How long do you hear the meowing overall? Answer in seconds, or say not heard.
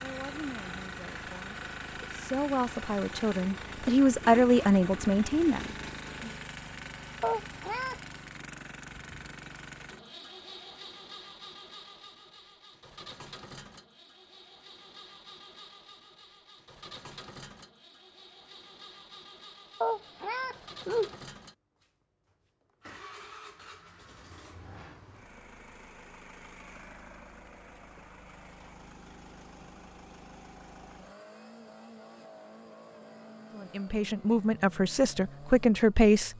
2 s.